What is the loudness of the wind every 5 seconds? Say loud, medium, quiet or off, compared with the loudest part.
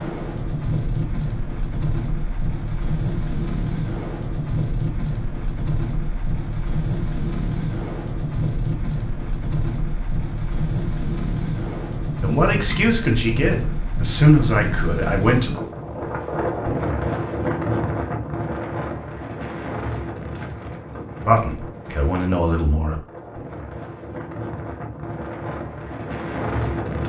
loud, loud, loud, loud, medium, loud.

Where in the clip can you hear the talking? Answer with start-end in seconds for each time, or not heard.
12.2-15.6, 21.2-23.0.